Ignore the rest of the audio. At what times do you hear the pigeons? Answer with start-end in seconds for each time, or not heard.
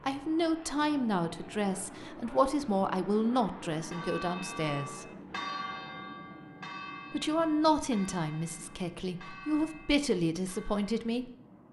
not heard.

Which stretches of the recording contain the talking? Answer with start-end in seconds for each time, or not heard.
0.0-5.0, 7.1-11.3.